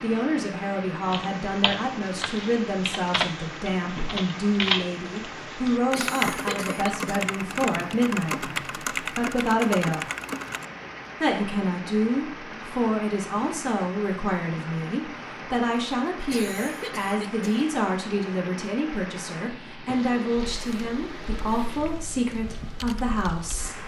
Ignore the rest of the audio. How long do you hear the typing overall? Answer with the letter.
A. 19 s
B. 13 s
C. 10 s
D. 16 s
B.